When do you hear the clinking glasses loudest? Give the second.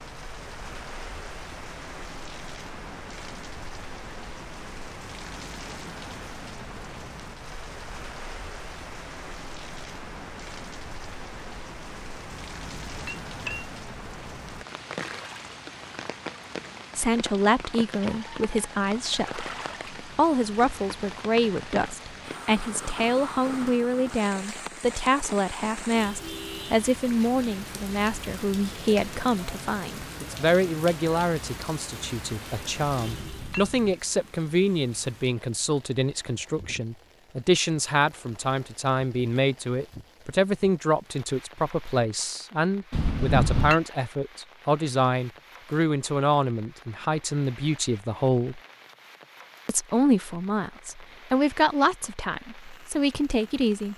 43 s.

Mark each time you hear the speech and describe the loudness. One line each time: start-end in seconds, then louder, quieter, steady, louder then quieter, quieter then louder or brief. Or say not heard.
16.9-48.6 steady
49.6-53.9 quieter then louder.